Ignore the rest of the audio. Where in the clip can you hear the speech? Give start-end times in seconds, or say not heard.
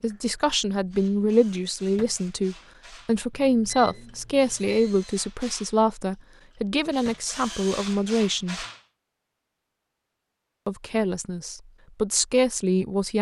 0.0-8.7, 10.7-13.1.